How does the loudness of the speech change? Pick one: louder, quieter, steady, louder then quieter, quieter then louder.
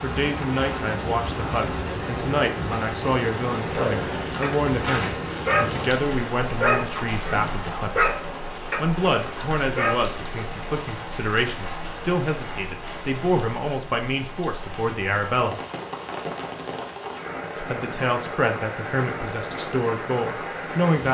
steady.